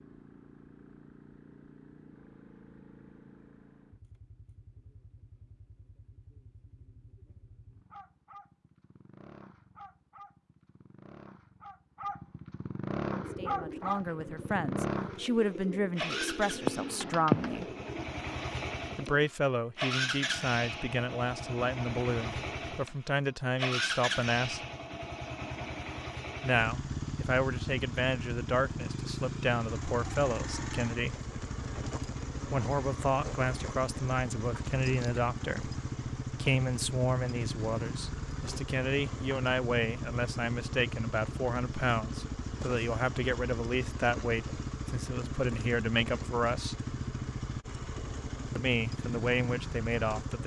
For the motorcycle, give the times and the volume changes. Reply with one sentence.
The motorcycle can be heard from 0.0 to 50.4 s, getting louder.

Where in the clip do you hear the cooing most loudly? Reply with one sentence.
The loudest moment of the cooing is at 17 seconds.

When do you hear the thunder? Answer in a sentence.
The thunder can't be heard in this clip.